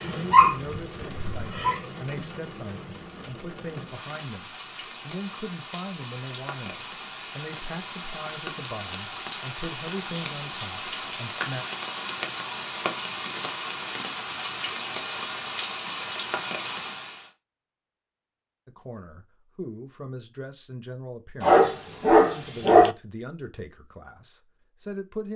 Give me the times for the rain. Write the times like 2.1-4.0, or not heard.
0.0-17.3.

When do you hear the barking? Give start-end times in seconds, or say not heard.
0.3-1.8, 21.4-22.9.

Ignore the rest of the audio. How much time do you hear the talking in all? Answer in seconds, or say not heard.
18 s.